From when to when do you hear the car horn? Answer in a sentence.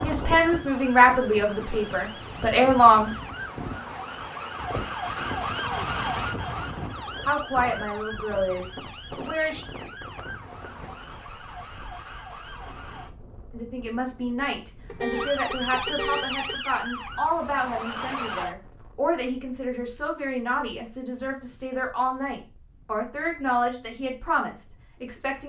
You can hear the car horn from 14.8 to 16.6 s.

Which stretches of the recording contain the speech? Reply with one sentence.
You can hear the speech from 0.0 to 3.1 s, from 7.2 to 9.6 s and from 13.5 to 25.4 s.